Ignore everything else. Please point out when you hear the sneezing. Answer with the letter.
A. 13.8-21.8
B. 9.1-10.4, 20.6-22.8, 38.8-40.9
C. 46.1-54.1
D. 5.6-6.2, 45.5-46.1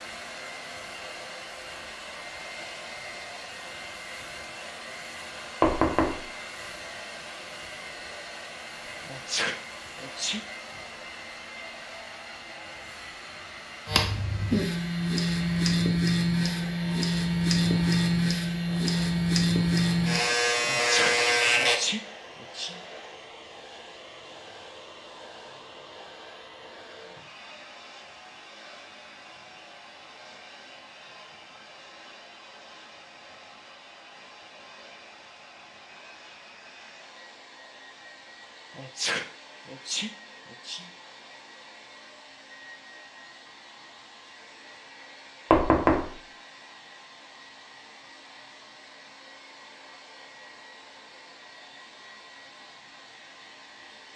B.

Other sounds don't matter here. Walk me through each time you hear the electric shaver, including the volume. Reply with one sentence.
The electric shaver can be heard from 13.8 to 21.8 s, at a steady volume.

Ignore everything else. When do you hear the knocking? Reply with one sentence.
The knocking can be heard from 5.6 to 6.2 s and from 45.5 to 46.1 s.